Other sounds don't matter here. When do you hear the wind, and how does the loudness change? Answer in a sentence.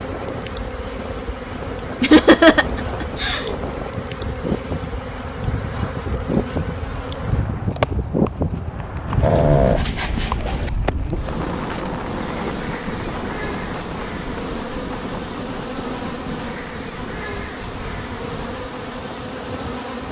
The wind can be heard from 0.0 to 20.0 s, getting louder then quieter.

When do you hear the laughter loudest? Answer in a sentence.
The volume of the laughter peaks at 2 seconds.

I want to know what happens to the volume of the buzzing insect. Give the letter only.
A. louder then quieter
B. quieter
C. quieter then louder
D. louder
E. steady
E.